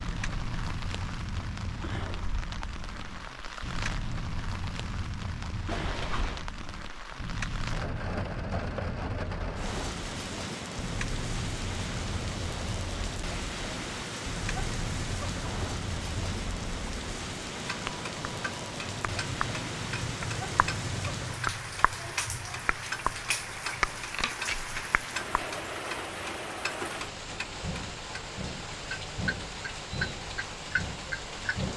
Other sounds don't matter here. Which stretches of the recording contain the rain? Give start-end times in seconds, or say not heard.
0.0-31.7.